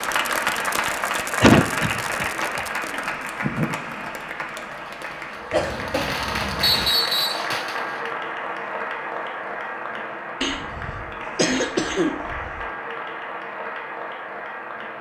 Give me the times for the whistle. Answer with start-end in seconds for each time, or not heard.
6.6-7.5.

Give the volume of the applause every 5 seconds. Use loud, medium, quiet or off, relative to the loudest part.
loud, loud, medium.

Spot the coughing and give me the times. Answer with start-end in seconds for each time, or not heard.
1.4-2.6, 5.5-6.9, 10.4-12.7.